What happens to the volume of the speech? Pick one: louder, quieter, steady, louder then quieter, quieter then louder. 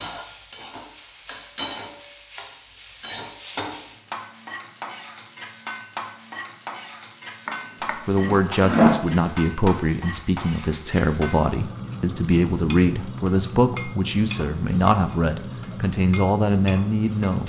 steady.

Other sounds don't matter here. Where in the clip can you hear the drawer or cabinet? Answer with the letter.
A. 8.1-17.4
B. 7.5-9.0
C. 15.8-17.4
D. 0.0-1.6
B.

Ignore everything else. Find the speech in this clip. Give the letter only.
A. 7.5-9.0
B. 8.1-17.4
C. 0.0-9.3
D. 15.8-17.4
B.